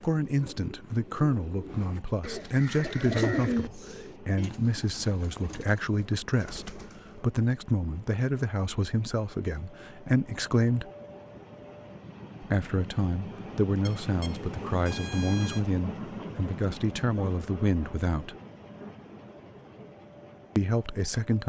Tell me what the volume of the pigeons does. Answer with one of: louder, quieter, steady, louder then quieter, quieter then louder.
louder then quieter.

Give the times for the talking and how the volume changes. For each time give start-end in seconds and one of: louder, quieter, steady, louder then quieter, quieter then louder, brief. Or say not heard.
0.0-10.9 steady
12.4-18.4 steady
20.6-21.4 brief.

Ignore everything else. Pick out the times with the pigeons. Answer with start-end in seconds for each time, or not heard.
0.2-7.3.